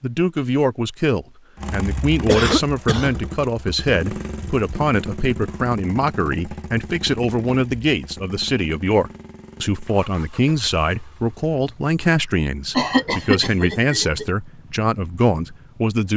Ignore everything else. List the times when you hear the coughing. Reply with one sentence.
The coughing can be heard from 2.2 to 3.1 s and from 12.8 to 14.2 s.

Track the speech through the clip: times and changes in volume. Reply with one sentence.
You can hear the speech from 0.0 to 16.1 s, at a steady volume.